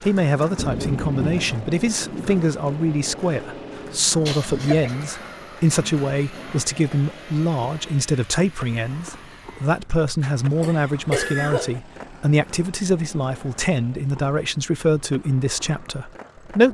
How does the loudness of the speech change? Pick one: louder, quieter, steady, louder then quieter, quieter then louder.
steady.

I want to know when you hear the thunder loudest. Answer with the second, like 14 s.
1 s.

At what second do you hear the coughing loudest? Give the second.
11 s.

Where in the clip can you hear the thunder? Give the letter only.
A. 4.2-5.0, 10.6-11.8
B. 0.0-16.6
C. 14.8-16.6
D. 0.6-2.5
D.